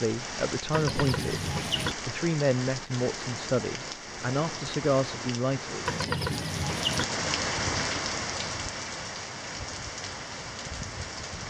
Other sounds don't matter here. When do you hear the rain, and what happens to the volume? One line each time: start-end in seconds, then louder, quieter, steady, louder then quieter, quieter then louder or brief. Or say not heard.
0.0-11.4 louder then quieter.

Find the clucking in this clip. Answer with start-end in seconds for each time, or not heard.
0.7-1.9, 5.8-7.0.